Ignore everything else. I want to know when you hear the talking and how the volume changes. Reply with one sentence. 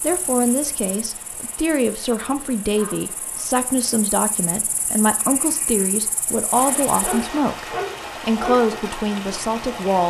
You can hear the talking from 0.0 to 10.0 s, at a steady volume.